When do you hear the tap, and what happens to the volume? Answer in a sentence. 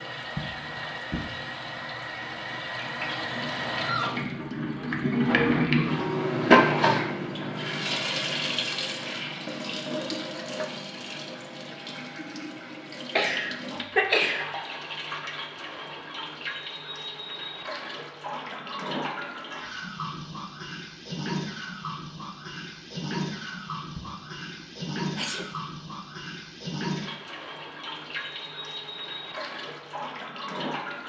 You can hear the tap from 0.0 to 31.0 s, getting quieter.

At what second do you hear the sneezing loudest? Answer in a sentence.
The volume of the sneezing peaks at 14 seconds.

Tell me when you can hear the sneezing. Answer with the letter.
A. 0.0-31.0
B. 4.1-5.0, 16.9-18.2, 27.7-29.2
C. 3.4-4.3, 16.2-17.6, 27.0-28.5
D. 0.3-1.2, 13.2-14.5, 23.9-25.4
D.